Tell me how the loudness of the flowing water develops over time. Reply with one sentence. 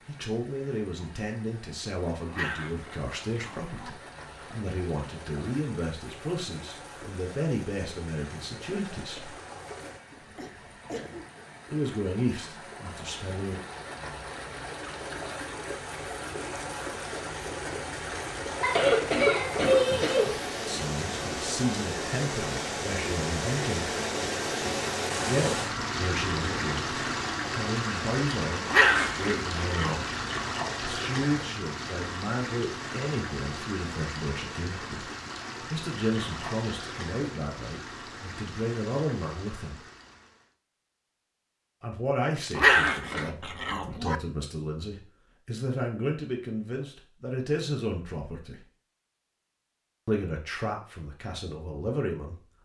The loudness of the flowing water goes up, then down.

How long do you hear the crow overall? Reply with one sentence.
The crow can't be heard in this clip.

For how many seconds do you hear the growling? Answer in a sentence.
You can hear the growling for 5 seconds altogether.